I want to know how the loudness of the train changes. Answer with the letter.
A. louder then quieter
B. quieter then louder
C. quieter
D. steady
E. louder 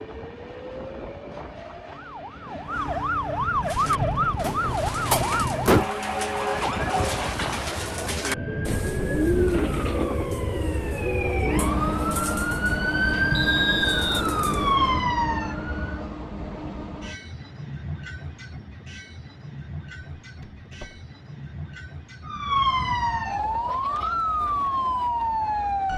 A.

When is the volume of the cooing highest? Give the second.
9 s.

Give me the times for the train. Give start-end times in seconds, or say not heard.
0.0-25.9.